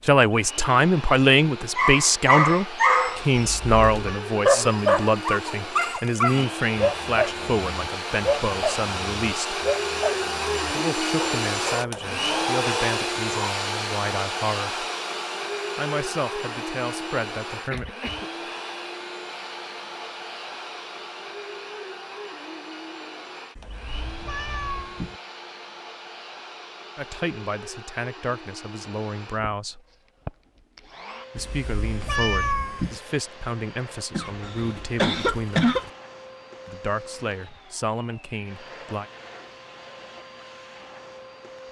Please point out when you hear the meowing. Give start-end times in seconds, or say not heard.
3.4-4.2, 23.6-25.1, 31.4-33.0.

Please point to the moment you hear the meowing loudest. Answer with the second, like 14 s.
32 s.